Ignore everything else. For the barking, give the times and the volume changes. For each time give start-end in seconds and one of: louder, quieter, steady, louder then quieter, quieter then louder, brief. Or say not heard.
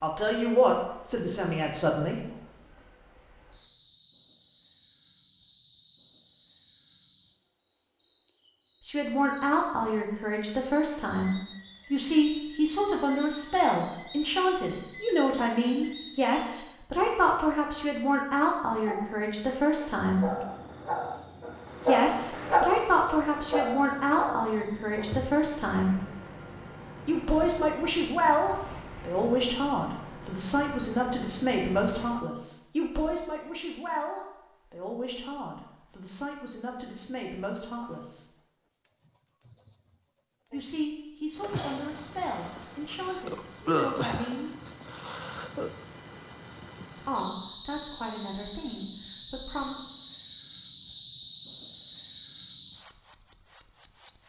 18.9-25.5 louder then quieter.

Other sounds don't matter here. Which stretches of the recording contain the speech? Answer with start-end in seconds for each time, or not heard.
0.0-2.1, 8.8-20.3, 21.9-26.0, 27.1-38.3, 40.5-44.5, 47.0-49.8.